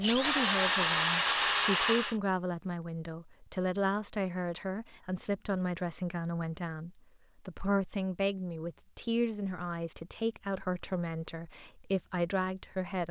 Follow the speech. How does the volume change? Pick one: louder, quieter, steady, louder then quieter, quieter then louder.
steady.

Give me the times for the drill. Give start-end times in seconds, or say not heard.
0.0-2.1.